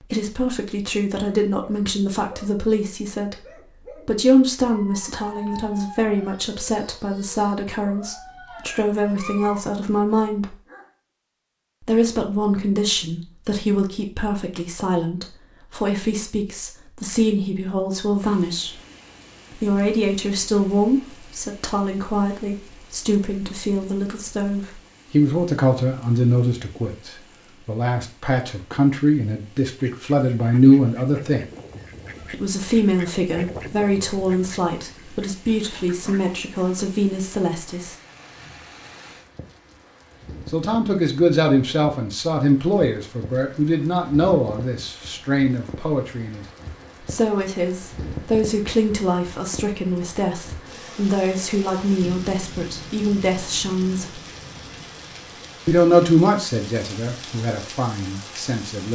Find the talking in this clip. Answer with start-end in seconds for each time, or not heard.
0.0-10.6, 11.8-18.8, 19.5-31.4, 32.2-38.0, 40.5-54.2, 55.6-58.8.